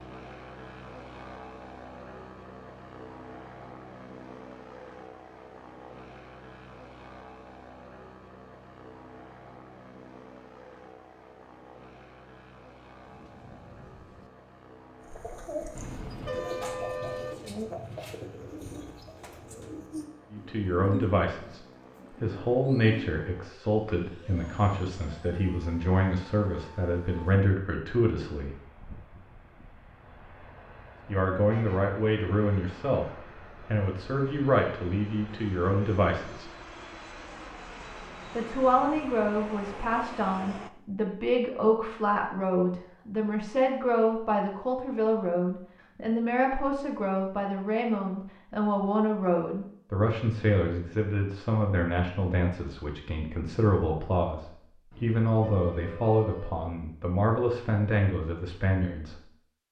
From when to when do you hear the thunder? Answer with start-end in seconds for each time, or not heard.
13.0-14.3.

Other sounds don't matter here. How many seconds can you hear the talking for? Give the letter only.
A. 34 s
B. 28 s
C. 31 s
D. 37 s
A.